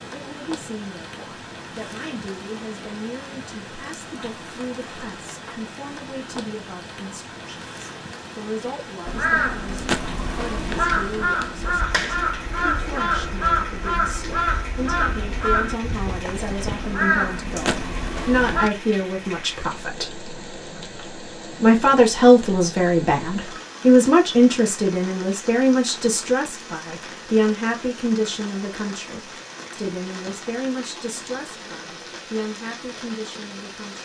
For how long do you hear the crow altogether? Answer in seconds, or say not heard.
10 s.